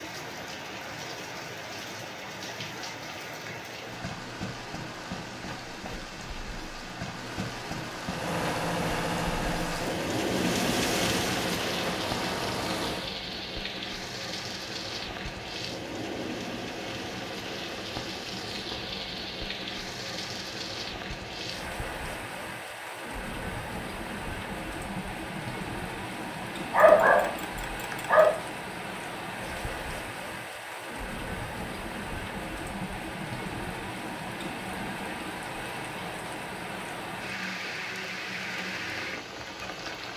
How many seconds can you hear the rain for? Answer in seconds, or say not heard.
40 s.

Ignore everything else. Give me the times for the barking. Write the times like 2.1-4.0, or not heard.
26.7-28.4.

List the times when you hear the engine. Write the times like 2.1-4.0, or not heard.
8.1-13.2.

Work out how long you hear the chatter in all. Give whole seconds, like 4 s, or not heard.
not heard.